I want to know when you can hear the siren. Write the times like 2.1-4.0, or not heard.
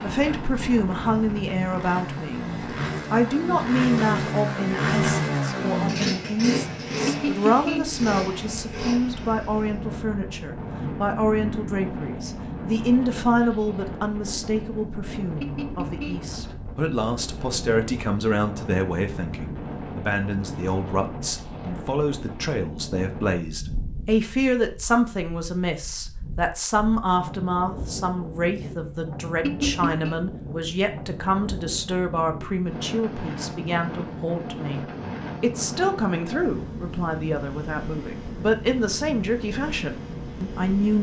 not heard.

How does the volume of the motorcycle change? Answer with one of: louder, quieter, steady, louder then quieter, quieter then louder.
louder then quieter.